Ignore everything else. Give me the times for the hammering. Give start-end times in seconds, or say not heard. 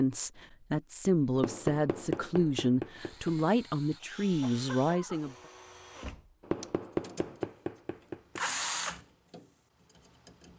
1.4-3.3, 6.4-8.4.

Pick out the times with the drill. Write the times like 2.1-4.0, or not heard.
3.0-10.5.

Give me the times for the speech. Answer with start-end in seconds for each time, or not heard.
0.0-5.3.